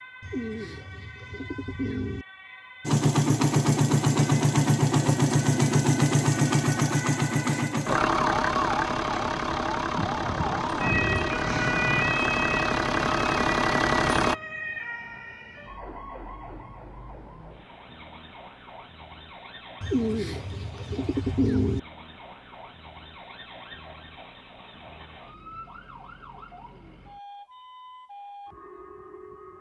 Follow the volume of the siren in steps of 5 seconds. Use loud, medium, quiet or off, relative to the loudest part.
quiet, medium, loud, quiet, quiet, quiet.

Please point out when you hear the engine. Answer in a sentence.
You can hear the engine from 2.9 to 14.3 s.